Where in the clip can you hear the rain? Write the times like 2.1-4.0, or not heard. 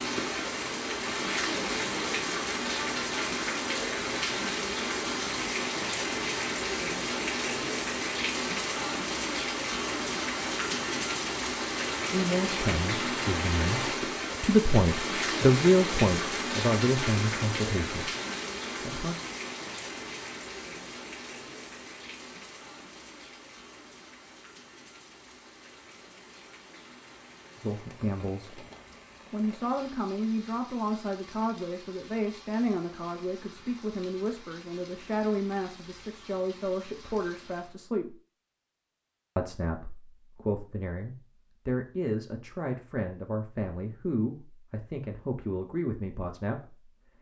0.0-37.8.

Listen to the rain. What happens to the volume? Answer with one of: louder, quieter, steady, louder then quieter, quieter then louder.
quieter.